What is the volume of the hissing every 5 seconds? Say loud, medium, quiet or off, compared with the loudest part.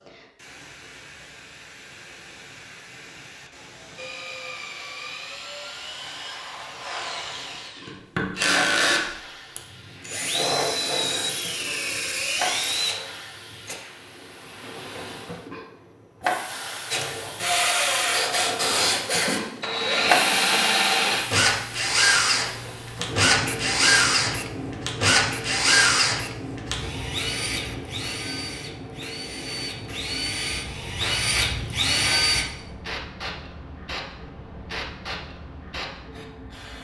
quiet, quiet, medium, loud, loud, medium, medium, medium.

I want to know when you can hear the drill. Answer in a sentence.
You can hear the drill from 4.0 to 13.8 s and from 16.9 to 32.5 s.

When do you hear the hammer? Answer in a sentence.
You can't hear the hammer here.